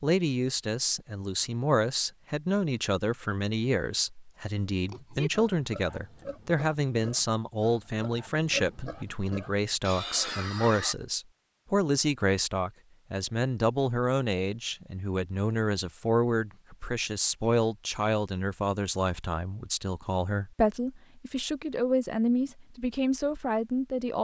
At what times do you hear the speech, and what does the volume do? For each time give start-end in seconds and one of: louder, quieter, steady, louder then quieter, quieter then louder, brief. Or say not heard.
0.0-24.1 steady.